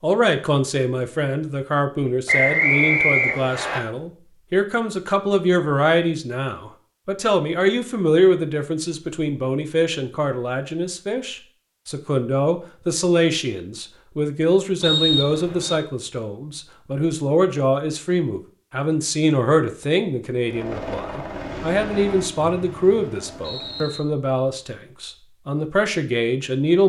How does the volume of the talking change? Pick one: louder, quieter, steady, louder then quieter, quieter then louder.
steady.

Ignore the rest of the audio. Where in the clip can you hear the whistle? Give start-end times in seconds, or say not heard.
2.2-3.8, 14.8-15.8, 22.4-24.0.